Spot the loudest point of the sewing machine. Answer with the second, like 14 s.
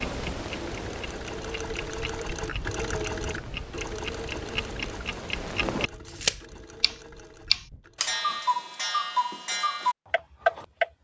3 s.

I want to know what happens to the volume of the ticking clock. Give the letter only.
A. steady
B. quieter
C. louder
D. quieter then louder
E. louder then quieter
C.